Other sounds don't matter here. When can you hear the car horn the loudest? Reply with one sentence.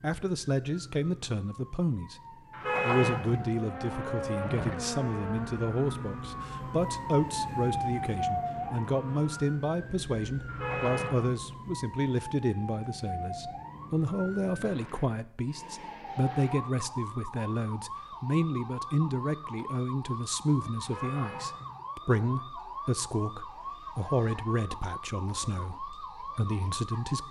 The loudest moment of the car horn is at 3 seconds.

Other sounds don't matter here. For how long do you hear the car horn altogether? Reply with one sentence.
The car horn can be heard for 3 seconds in total.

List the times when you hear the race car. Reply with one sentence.
The race car can be heard from 3.4 to 9.7 s.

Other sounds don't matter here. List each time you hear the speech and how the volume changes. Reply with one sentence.
You can hear the speech briefly from 0.0 to 2.1 s; and from 2.8 to 27.2 s, at a steady volume.